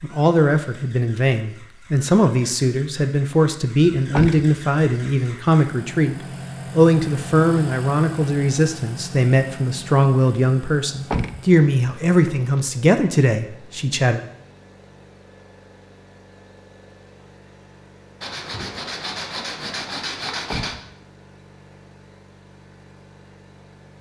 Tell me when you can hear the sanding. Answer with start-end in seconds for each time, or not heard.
18.2-20.8.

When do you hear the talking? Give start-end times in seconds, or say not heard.
0.0-14.2.